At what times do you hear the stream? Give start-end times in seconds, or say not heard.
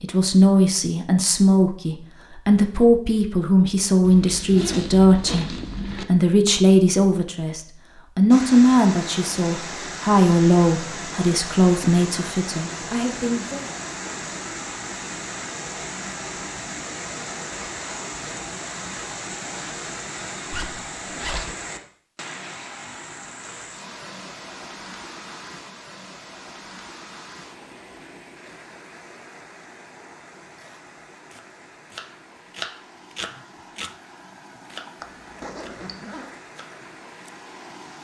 8.3-37.9.